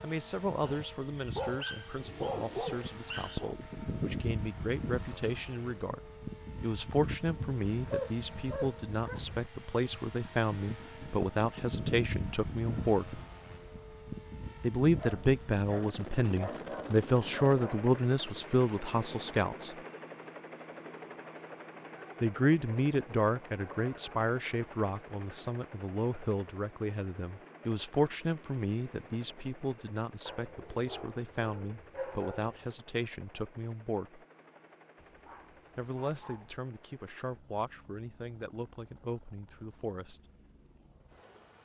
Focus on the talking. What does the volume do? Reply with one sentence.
The volume of the talking goes up, then down.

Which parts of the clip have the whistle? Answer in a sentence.
The whistle can't be heard in this clip.